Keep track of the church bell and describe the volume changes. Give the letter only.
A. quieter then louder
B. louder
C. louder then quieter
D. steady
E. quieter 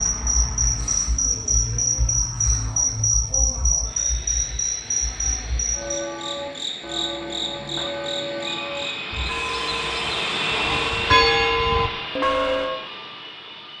B.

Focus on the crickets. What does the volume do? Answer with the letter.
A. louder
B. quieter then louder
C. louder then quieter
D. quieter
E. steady
D.